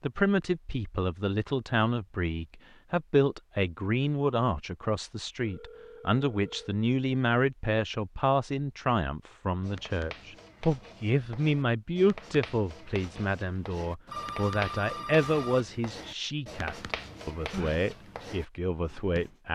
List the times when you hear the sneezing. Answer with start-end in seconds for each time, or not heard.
17.1-17.8.